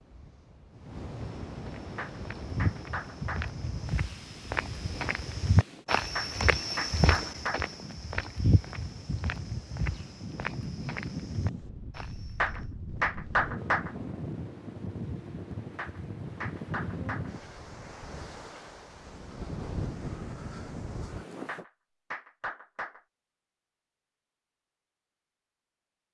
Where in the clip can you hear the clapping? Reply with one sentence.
The clapping can be heard from 1.9 to 3.5 s, from 6.2 to 7.7 s, from 12.4 to 13.9 s, from 15.8 to 17.3 s and from 21.4 to 23.0 s.